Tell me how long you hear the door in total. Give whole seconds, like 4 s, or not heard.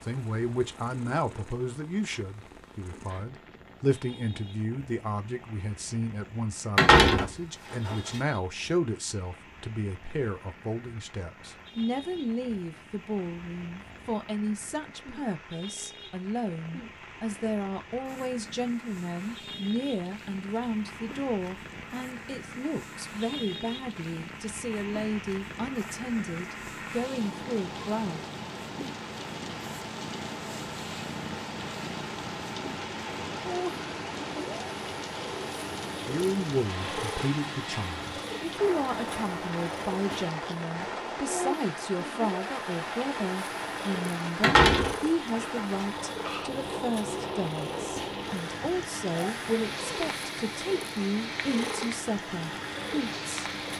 3 s.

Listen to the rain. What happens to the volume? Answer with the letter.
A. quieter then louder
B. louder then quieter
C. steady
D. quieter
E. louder
E.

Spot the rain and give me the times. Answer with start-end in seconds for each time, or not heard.
0.0-53.7.